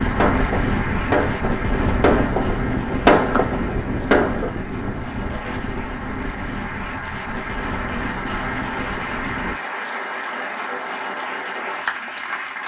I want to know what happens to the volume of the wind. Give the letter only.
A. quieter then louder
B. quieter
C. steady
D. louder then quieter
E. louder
B.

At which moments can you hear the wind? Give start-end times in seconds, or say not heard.
0.0-9.6.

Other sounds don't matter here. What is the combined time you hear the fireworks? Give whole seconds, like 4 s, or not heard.
4 s.